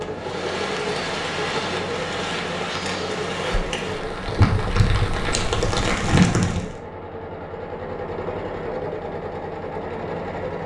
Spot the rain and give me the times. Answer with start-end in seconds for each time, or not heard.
0.0-6.8.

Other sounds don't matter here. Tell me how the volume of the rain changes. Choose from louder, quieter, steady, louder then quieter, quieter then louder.
louder.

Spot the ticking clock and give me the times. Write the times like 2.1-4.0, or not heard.
not heard.